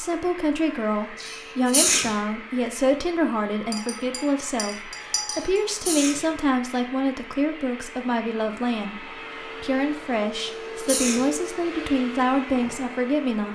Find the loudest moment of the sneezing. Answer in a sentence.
The loudest moment of the sneezing is at 2 seconds.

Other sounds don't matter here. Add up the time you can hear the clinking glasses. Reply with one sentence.
You can hear the clinking glasses for 2 seconds altogether.